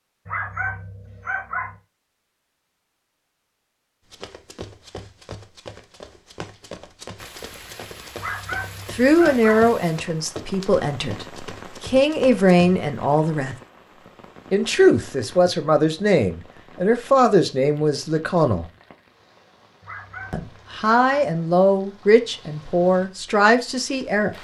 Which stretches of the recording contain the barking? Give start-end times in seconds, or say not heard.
0.2-1.8, 8.2-9.6, 19.8-21.3.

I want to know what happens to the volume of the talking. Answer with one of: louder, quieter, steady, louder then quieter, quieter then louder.
steady.